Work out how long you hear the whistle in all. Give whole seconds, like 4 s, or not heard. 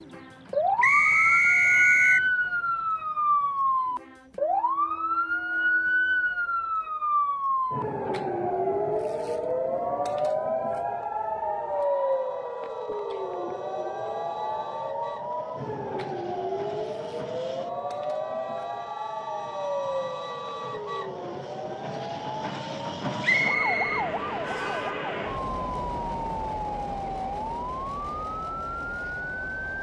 3 s.